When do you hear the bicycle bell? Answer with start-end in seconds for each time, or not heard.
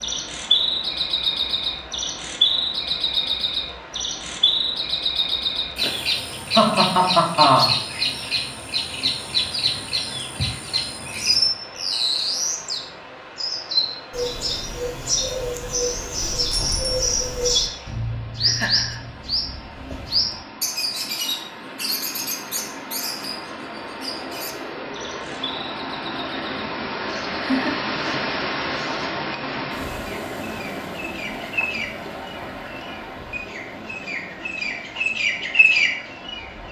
16.2-17.6.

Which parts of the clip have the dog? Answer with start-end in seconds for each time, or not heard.
not heard.